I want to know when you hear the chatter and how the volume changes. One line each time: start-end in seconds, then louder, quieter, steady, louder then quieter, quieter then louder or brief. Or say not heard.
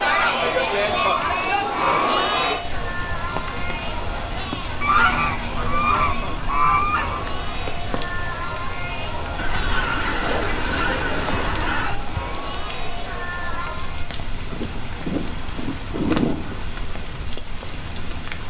0.0-14.2 quieter.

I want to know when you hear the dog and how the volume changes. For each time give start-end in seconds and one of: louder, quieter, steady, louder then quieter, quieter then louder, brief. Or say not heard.
not heard.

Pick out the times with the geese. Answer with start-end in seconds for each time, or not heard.
0.0-2.6, 4.8-7.2, 9.3-12.0, 14.5-16.6.